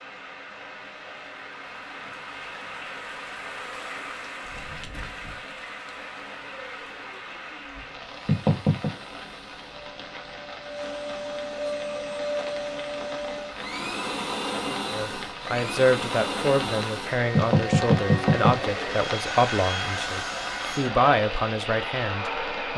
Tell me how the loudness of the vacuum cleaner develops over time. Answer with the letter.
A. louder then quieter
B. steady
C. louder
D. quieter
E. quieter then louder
C.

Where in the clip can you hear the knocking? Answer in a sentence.
The knocking can be heard from 8.2 to 8.9 s and from 17.4 to 18.6 s.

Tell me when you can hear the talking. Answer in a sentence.
The talking can be heard from 14.9 to 22.7 s.